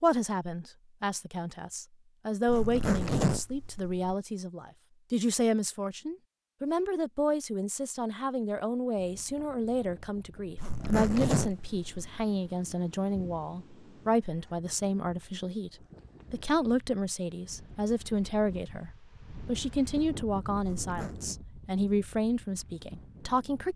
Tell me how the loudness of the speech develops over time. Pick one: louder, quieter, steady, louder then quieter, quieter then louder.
steady.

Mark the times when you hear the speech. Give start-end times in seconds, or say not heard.
0.0-23.7.